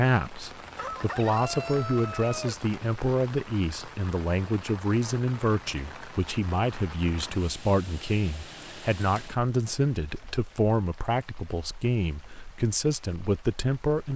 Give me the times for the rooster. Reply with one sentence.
You can hear the rooster from 0.8 to 2.6 s.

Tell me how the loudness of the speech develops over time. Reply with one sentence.
The loudness of the speech stays about the same.